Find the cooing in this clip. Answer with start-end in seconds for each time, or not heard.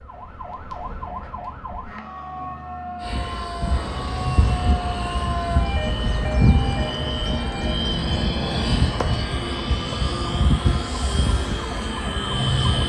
not heard.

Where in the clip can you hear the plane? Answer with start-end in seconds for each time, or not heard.
3.0-12.8.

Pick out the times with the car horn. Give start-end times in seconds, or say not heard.
not heard.